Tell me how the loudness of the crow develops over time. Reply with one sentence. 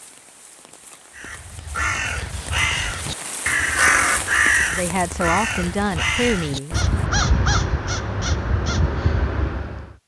The loudness of the crow goes up, then down.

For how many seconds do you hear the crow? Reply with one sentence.
The crow can be heard for 9 seconds in total.